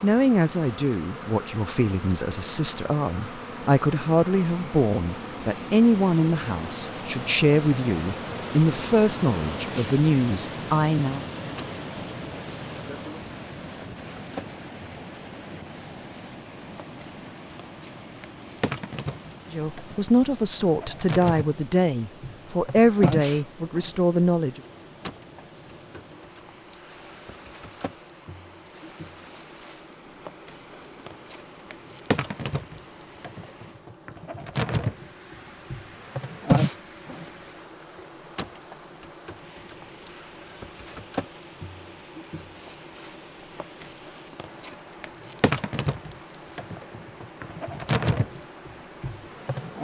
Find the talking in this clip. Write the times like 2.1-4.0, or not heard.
0.0-11.2, 19.5-24.6.